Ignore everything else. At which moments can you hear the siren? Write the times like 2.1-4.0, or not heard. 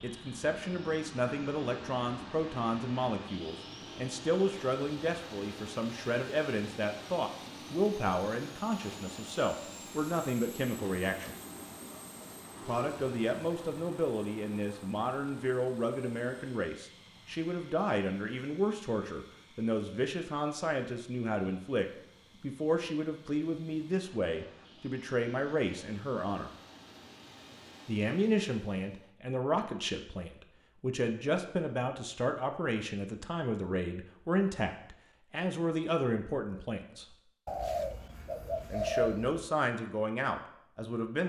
not heard.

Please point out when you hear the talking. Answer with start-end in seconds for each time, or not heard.
0.0-11.3, 12.7-26.5, 27.9-37.1, 38.7-41.2.